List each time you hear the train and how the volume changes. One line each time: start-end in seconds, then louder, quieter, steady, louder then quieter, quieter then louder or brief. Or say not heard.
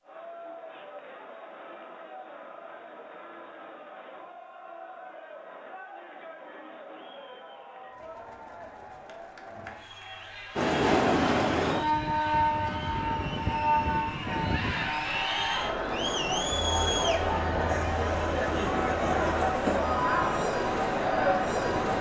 10.6-21.9 quieter.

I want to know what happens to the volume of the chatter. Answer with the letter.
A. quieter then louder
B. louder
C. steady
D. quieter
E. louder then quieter
B.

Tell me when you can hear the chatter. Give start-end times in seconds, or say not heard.
0.0-21.9.